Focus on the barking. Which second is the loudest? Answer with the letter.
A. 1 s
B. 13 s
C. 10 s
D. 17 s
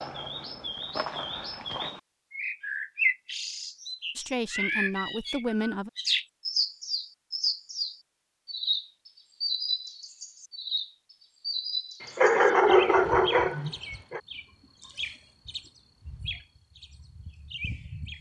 B.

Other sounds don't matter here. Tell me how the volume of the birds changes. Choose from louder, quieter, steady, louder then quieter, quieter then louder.
quieter.